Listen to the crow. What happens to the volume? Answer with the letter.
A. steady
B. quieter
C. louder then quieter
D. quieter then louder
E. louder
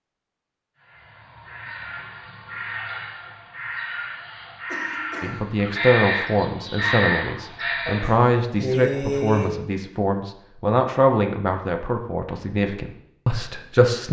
E.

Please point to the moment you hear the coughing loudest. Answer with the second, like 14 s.
9 s.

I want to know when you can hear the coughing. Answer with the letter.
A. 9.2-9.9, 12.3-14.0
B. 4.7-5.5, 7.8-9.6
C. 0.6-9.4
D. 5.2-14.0
B.